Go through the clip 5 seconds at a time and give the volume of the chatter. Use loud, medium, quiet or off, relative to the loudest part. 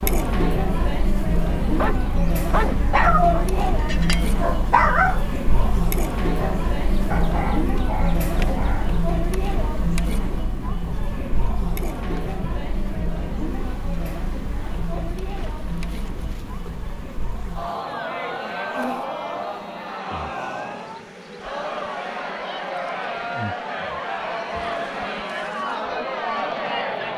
loud, loud, medium, medium, loud, loud.